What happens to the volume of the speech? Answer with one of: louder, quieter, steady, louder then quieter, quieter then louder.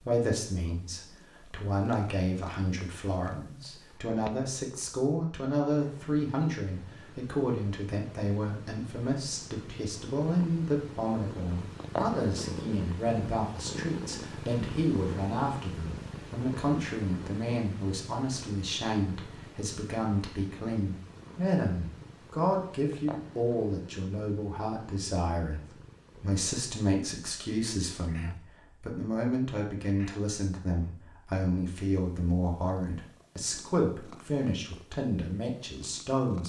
steady.